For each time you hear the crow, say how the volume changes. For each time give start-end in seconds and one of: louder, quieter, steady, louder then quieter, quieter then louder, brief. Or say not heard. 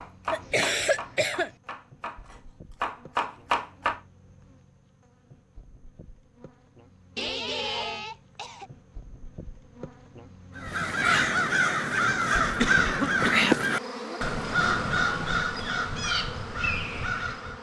10.6-17.5 quieter.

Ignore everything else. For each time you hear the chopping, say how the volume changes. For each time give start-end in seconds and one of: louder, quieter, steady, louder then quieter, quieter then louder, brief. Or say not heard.
0.0-4.0 quieter then louder.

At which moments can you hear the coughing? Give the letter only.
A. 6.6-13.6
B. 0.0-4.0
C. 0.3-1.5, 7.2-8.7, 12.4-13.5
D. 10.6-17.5
C.